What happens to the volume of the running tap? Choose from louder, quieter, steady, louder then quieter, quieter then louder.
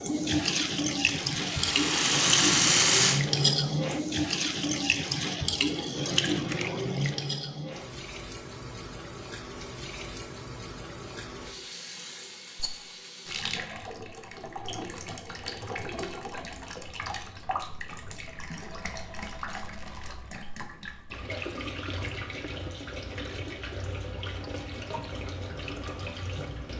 quieter.